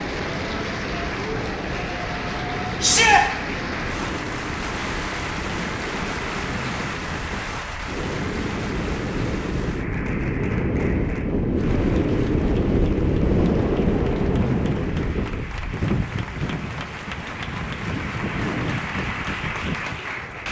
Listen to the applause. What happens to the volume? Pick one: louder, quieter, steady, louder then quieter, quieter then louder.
quieter then louder.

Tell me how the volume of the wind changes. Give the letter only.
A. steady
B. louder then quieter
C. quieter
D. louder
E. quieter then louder
B.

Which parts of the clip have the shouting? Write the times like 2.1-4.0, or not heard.
2.8-3.2.